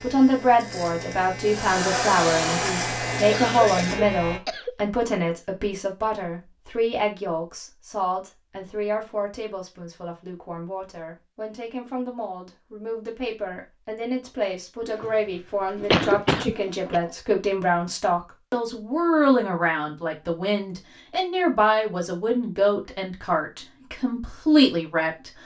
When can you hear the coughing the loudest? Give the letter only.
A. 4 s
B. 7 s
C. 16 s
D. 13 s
C.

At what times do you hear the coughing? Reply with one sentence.
The coughing can be heard from 3.3 to 4.8 s and from 15.8 to 17.0 s.